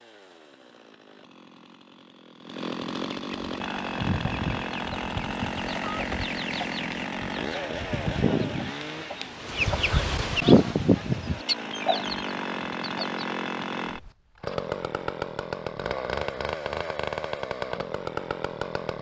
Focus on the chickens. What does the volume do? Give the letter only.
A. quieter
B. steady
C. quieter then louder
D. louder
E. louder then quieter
E.